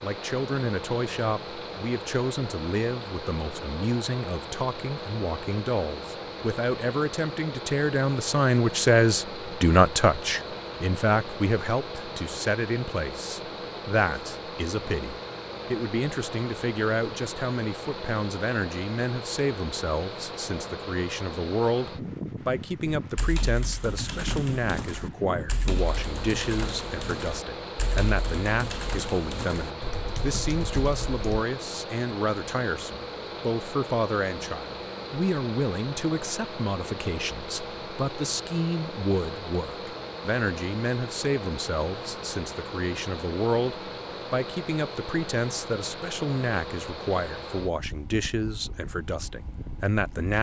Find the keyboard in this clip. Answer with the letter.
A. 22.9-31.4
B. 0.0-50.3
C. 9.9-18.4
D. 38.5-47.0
A.